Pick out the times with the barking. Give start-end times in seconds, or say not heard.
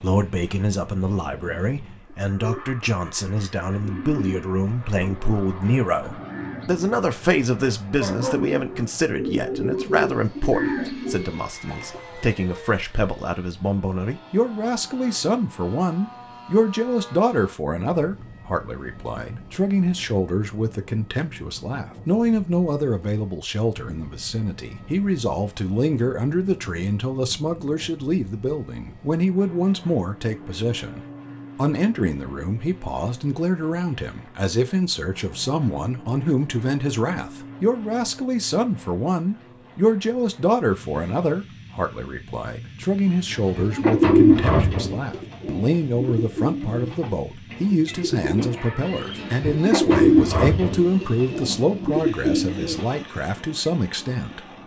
8.0-8.4.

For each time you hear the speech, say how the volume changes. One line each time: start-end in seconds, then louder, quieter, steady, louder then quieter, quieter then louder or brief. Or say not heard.
0.0-54.5 steady.